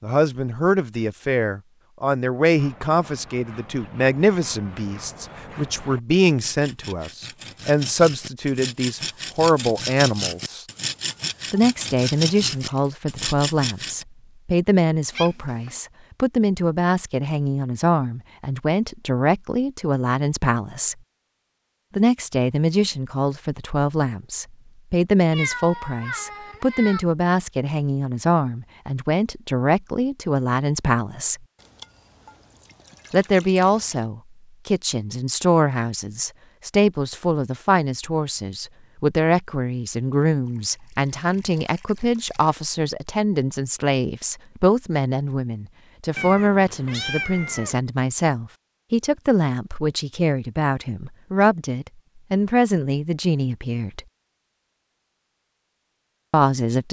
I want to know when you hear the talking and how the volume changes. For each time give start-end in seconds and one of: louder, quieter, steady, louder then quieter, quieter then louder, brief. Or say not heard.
0.0-10.7 steady
11.5-20.9 steady
21.9-31.4 steady
33.1-54.0 steady
56.3-56.8 brief.